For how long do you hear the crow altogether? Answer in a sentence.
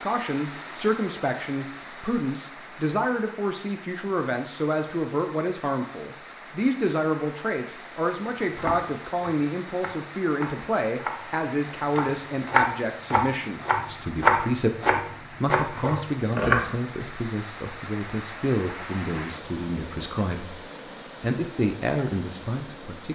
The crow can't be heard in this clip.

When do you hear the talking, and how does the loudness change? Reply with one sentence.
The talking can be heard from 0.0 to 23.1 s, at a steady volume.